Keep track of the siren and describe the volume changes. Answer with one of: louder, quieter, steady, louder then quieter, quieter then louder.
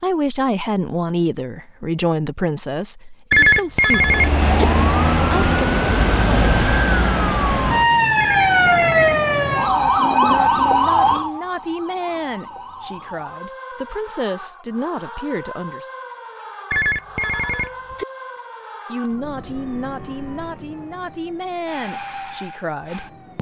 quieter.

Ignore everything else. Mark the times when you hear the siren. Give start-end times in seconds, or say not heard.
3.9-23.3.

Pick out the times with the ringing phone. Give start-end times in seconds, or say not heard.
3.3-4.7, 8.2-8.9, 16.7-18.1.